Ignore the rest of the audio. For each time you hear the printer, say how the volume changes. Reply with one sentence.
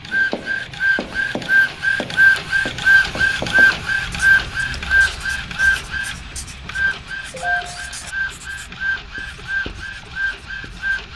You can hear the printer from 0.0 to 11.1 s, getting quieter.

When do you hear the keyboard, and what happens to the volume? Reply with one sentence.
The keyboard can't be heard in this clip.